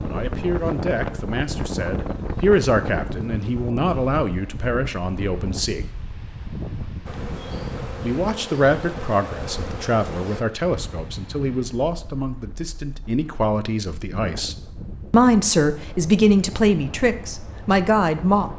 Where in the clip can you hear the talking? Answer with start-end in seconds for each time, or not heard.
0.0-5.8, 8.0-18.5.